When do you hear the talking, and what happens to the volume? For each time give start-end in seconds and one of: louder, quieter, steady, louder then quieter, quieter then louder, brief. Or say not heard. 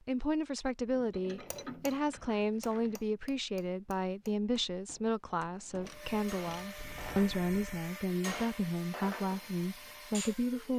0.1-10.7 steady.